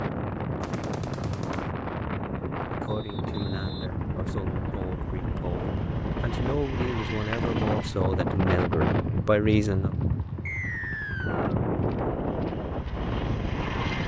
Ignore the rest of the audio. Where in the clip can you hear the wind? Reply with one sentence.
The wind can be heard from 0.0 to 14.0 s.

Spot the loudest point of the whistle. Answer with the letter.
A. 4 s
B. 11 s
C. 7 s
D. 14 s
B.